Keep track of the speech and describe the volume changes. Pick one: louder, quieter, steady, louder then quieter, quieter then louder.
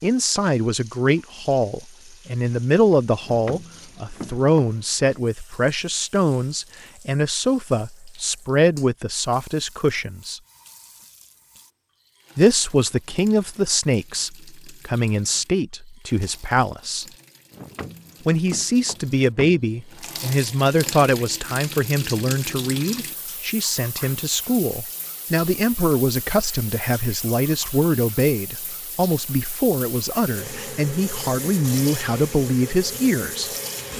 steady.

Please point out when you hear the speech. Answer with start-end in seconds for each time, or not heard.
0.0-10.4, 12.3-17.1, 18.2-33.5.